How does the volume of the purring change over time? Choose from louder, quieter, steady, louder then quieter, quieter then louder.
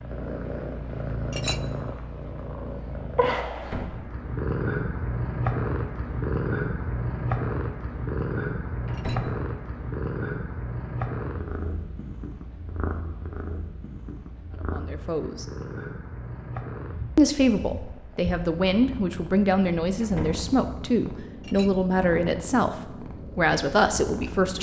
quieter.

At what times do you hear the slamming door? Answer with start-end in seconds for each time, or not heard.
3.5-4.1, 8.8-9.3, 20.0-20.4.